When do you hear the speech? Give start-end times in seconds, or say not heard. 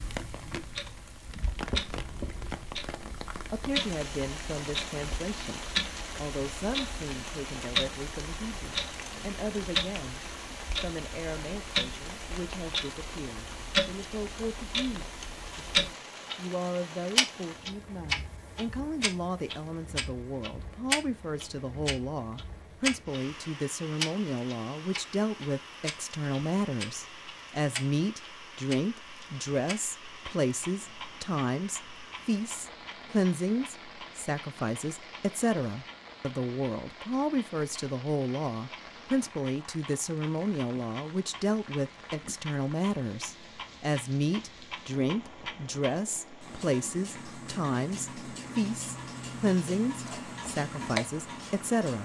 3.0-10.2, 10.8-52.0.